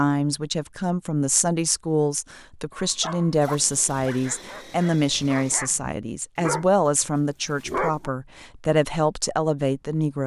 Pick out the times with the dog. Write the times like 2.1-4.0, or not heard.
2.7-6.7, 7.5-8.1.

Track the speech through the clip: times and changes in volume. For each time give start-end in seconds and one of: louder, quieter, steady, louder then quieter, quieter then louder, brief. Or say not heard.
0.0-10.2 steady.